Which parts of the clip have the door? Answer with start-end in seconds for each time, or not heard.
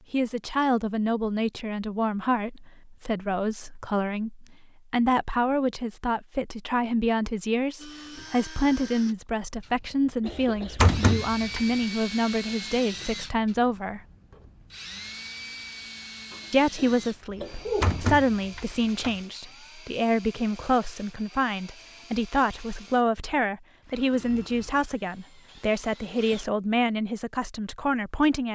10.2-11.7, 17.3-19.1.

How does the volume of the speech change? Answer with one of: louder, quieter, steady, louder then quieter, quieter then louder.
steady.